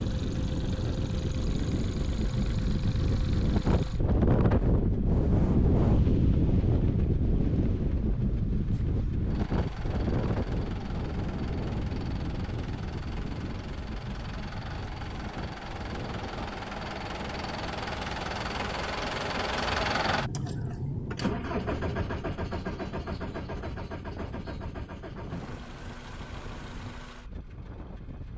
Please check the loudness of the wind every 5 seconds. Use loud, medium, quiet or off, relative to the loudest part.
loud, loud, medium, quiet, quiet, quiet.